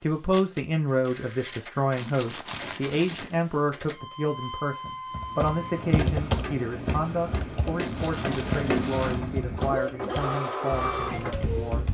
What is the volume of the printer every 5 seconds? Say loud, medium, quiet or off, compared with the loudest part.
medium, loud, loud.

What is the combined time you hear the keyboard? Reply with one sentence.
The keyboard can be heard for 7 seconds in total.